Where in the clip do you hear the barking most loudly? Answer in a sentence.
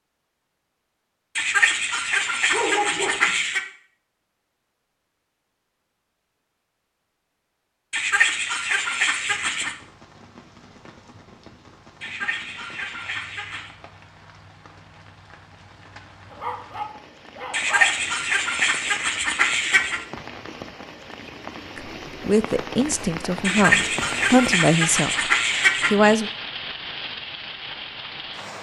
The loudest moment of the barking is at 3 seconds.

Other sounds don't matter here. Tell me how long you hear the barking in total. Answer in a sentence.
You can hear the barking for 3 seconds altogether.